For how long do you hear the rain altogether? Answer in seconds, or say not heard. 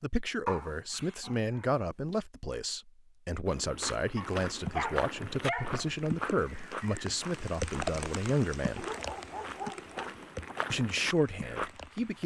8 s.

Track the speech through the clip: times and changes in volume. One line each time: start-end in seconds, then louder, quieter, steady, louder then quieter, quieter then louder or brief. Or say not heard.
0.0-8.8 steady
10.7-12.2 brief.